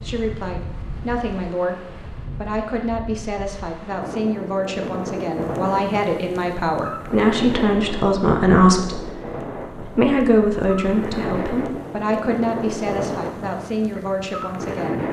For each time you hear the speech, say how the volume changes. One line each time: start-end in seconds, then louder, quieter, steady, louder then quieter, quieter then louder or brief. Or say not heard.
0.0-15.0 louder then quieter.